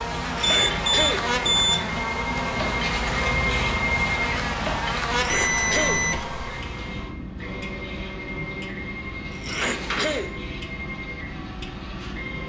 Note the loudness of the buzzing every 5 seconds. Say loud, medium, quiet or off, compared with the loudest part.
loud, loud, off.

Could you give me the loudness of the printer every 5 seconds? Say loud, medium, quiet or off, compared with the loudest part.
loud, medium, medium.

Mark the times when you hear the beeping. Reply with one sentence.
The beeping can be heard from 0.4 to 1.9 s, from 5.2 to 6.3 s and from 9.6 to 10.2 s.